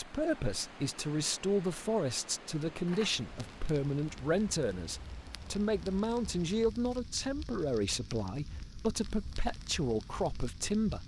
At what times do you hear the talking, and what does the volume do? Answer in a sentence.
You can hear the talking from 0.0 to 11.0 s, at a steady volume.